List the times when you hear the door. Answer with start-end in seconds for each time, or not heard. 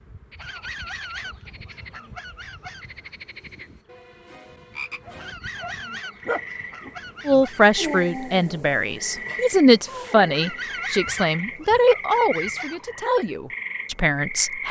not heard.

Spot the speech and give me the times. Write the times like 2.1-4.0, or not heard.
7.2-14.6.